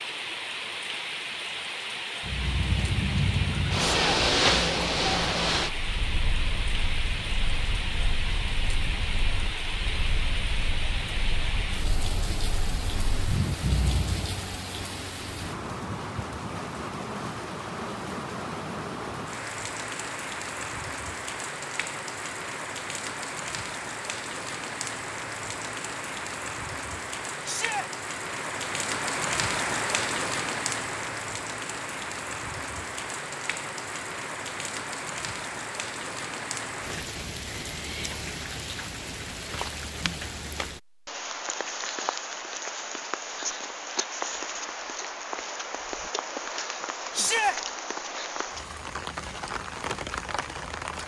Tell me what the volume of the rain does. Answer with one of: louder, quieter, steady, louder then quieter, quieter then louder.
steady.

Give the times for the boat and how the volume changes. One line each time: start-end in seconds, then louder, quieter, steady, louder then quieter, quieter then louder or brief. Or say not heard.
2.2-14.4 quieter then louder.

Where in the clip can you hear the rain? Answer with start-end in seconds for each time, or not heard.
0.0-51.0.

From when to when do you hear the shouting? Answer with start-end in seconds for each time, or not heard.
3.8-4.2, 27.4-27.9, 47.1-47.5.